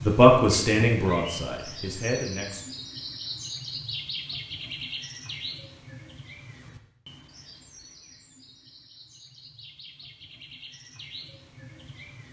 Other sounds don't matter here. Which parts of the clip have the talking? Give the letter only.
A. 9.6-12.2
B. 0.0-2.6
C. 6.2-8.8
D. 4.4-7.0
B.